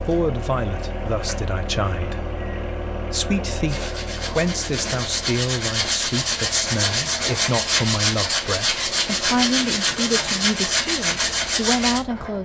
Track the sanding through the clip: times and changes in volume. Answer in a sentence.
The sanding can be heard from 3.6 to 12.0 s, getting louder.